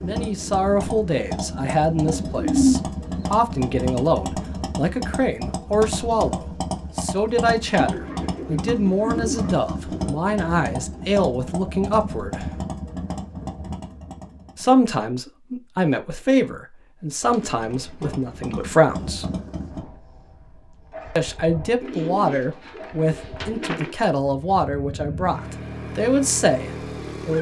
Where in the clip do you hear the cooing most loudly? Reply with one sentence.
The volume of the cooing peaks at 3 seconds.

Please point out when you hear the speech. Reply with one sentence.
You can hear the speech from 0.0 to 12.6 s, from 14.6 to 19.2 s and from 21.1 to 27.3 s.